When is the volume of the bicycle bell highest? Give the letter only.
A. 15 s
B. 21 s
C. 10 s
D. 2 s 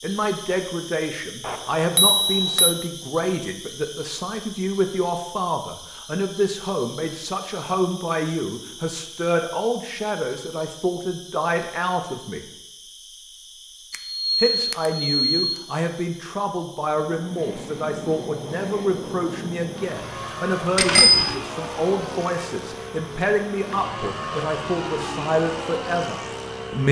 B.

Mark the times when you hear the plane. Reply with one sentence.
The plane can be heard from 16.9 to 26.8 s.